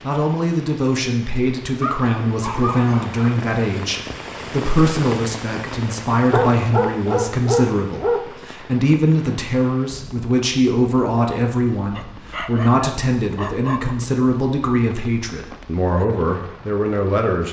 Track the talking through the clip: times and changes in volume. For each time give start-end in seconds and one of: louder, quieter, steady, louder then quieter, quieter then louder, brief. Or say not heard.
0.0-17.4 steady.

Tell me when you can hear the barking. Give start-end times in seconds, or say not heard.
1.8-3.4, 6.3-8.2, 11.9-13.9.